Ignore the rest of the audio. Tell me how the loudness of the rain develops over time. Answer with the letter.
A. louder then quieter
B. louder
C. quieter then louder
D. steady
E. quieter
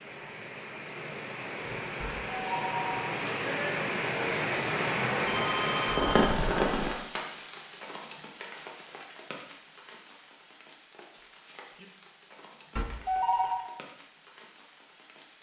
A.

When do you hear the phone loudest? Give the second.
13 s.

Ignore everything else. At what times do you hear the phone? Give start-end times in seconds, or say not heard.
2.0-3.1, 5.2-6.3, 12.8-13.7.